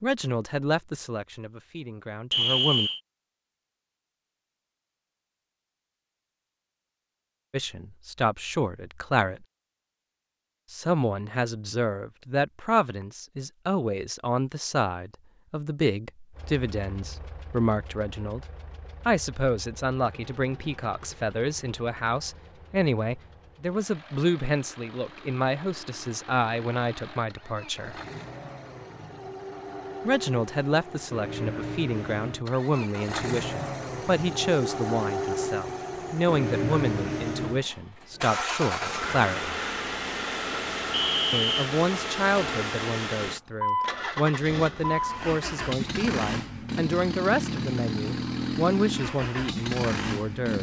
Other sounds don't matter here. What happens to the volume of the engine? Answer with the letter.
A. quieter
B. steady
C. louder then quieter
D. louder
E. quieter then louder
D.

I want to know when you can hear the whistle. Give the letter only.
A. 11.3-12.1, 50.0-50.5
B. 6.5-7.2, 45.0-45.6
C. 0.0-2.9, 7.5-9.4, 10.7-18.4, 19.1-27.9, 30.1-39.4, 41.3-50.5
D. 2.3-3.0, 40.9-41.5
D.